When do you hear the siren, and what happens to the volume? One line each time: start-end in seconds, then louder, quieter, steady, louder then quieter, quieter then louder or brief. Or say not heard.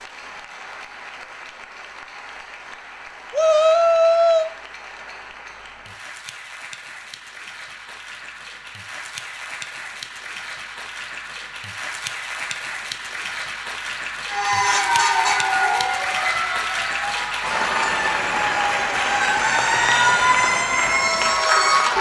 14.2-21.9 quieter then louder.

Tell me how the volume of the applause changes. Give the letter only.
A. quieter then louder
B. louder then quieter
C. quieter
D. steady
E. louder
E.